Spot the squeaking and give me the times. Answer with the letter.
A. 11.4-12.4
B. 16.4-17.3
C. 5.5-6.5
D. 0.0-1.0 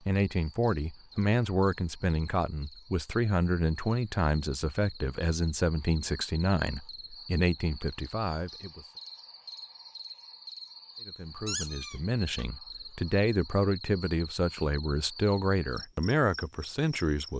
A.